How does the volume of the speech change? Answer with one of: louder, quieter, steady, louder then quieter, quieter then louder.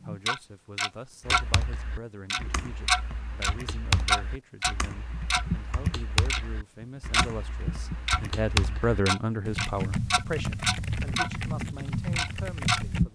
louder then quieter.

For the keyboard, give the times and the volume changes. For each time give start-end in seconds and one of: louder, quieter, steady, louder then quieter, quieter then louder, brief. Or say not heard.
1.2-13.1 louder.